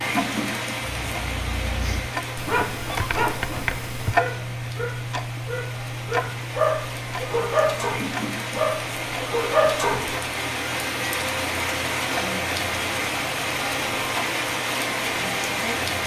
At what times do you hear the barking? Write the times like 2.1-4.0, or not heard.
0.9-10.1.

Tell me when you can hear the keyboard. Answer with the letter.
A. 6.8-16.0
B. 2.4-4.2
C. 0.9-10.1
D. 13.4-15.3
B.